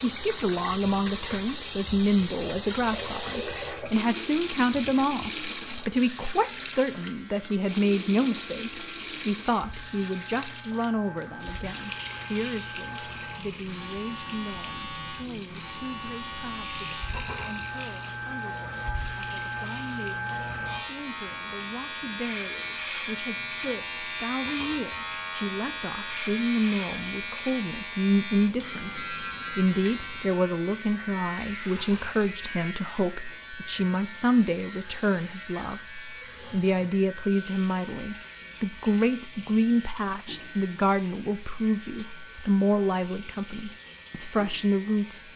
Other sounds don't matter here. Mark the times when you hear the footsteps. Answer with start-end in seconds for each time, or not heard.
not heard.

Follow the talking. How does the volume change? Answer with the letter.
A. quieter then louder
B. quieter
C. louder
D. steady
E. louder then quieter
A.